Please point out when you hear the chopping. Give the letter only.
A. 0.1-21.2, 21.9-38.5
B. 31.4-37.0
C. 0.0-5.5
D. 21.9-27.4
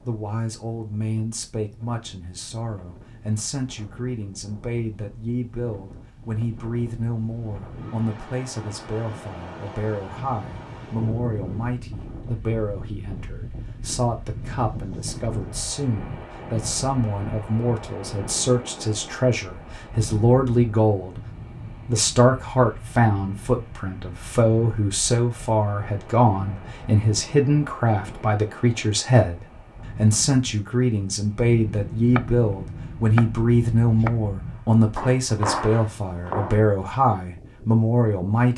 B.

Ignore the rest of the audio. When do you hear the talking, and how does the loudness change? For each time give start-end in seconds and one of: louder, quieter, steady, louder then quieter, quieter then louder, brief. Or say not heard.
0.1-21.2 louder
21.9-38.5 steady.